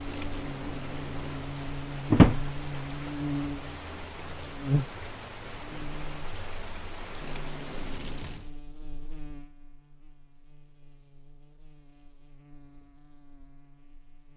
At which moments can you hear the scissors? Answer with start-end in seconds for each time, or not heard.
0.1-1.5, 7.2-8.2.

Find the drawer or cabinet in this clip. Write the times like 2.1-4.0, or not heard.
2.1-2.5.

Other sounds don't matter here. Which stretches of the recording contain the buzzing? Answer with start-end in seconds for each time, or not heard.
0.0-14.3.